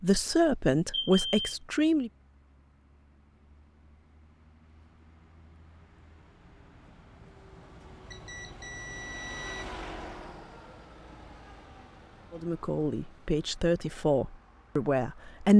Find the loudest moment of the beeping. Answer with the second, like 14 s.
1 s.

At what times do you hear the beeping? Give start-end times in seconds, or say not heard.
0.2-1.6, 8.1-9.7.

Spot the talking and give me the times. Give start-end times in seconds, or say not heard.
0.0-2.1, 12.3-15.5.